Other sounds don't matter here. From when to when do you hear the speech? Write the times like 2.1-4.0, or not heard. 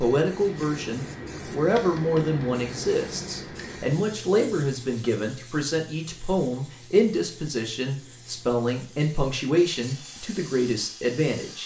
0.0-11.6.